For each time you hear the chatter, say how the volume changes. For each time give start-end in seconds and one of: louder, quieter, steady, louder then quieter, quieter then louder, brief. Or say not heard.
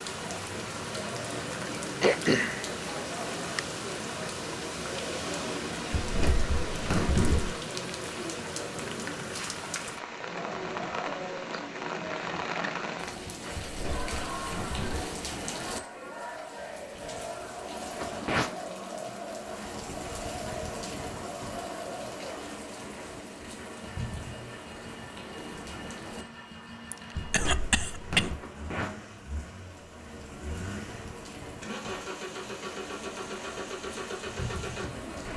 0.0-22.6 steady.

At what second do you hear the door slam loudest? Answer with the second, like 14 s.
7 s.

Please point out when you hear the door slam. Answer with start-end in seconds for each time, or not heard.
5.9-7.5, 13.6-15.1, 27.1-28.4.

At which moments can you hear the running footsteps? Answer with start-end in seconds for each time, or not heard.
not heard.